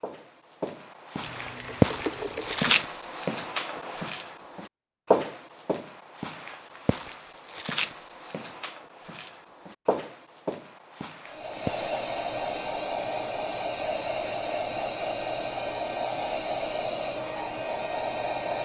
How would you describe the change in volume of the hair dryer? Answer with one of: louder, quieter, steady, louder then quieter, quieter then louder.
steady.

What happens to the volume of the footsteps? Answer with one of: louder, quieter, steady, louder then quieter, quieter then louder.
quieter.